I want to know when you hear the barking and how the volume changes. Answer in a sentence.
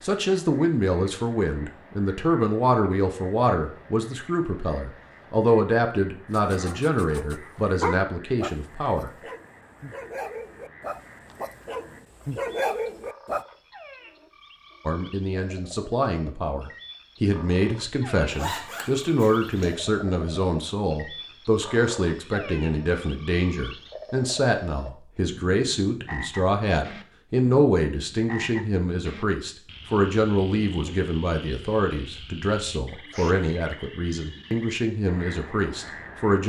You can hear the barking from 6.3 to 13.4 s, getting quieter then louder.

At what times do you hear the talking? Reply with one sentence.
You can hear the talking from 0.0 to 9.1 s and from 14.8 to 36.4 s.